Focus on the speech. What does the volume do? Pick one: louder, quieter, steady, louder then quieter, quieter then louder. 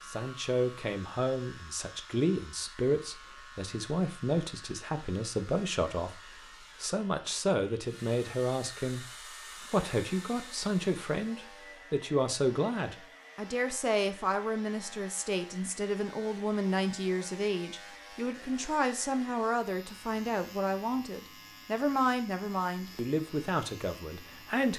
steady.